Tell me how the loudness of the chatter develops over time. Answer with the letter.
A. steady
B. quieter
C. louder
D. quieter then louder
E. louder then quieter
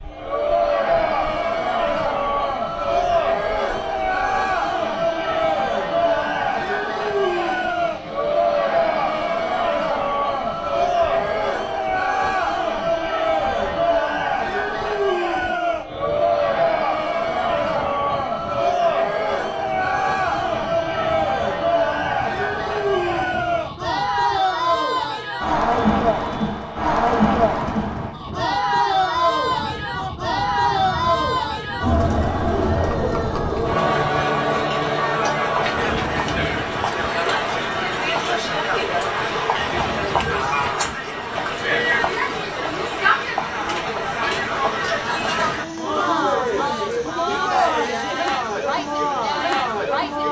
A.